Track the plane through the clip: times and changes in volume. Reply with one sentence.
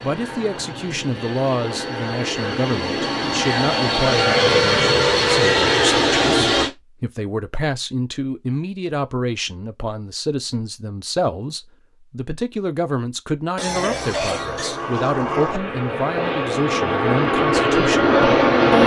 The plane can be heard from 0.0 to 6.7 s, getting louder; and from 13.7 to 18.8 s, getting louder.